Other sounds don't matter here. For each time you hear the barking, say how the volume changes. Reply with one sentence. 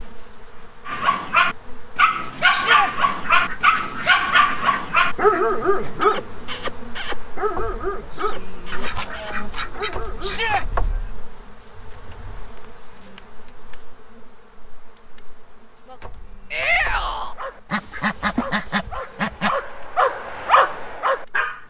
The barking can be heard from 0.8 to 10.4 s, getting quieter; and from 17.2 to 21.6 s, getting louder.